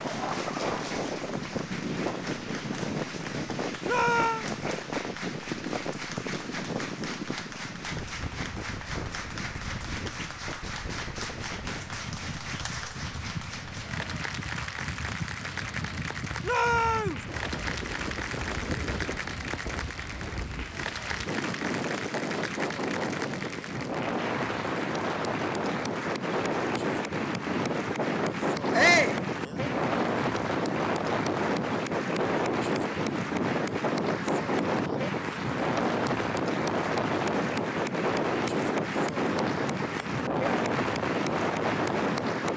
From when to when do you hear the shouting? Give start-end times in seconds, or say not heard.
3.9-4.5, 16.4-17.2, 28.7-29.2.